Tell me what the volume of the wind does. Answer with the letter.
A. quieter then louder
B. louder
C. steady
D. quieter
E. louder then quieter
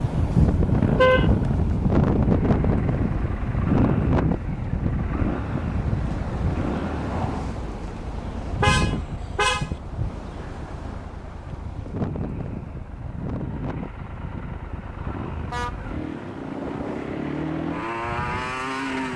D.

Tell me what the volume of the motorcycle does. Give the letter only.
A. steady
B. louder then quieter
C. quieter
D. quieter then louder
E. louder
D.